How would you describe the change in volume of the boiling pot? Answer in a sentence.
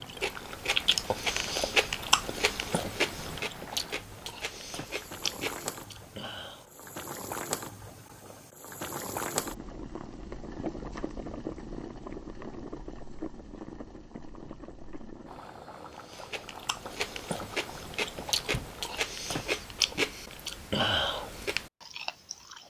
The volume of the boiling pot goes up, then down.